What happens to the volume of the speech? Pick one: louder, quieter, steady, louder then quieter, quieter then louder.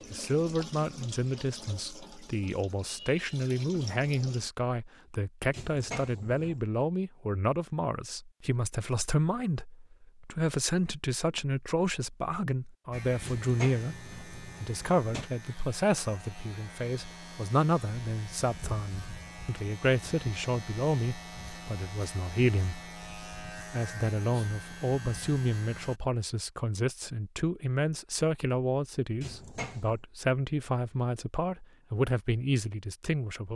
steady.